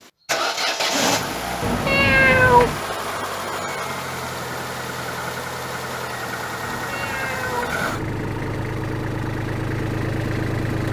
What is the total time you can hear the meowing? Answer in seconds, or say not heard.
3 s.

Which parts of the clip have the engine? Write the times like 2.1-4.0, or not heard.
0.1-10.8.